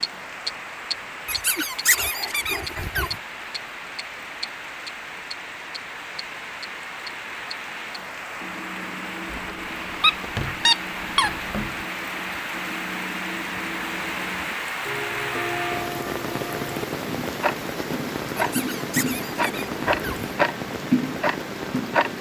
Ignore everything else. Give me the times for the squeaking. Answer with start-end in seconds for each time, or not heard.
1.2-3.1, 9.3-11.8, 18.4-20.4.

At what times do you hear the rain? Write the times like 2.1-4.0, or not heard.
0.0-22.1.